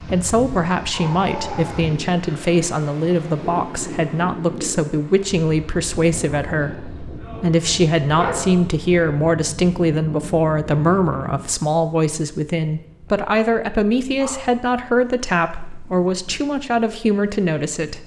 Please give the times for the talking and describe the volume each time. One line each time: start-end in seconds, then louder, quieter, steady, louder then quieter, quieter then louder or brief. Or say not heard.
0.1-18.0 steady.